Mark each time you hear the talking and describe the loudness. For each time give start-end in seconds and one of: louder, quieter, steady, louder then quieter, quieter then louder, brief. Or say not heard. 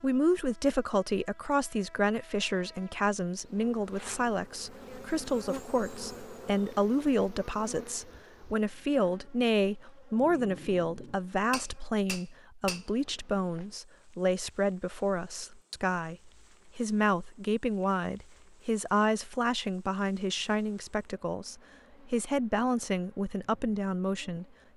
0.0-24.4 steady.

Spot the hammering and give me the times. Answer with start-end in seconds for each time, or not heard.
11.5-12.8.